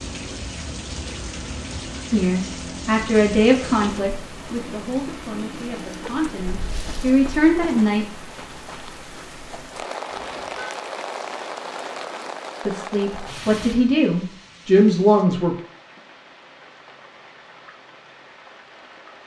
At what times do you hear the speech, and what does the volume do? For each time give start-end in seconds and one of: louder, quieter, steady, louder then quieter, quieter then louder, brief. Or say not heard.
2.1-8.1 quieter then louder
12.7-15.6 brief.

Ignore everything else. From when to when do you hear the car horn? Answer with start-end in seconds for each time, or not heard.
10.1-10.8.